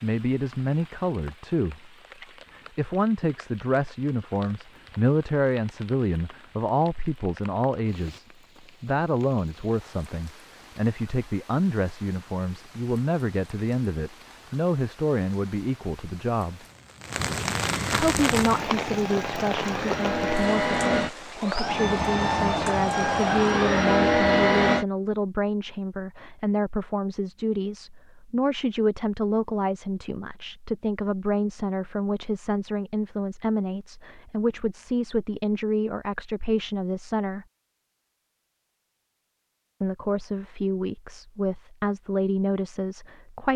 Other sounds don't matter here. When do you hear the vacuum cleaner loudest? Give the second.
24 s.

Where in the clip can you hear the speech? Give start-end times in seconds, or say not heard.
0.0-1.9, 2.5-16.6, 17.9-37.5, 39.8-43.5.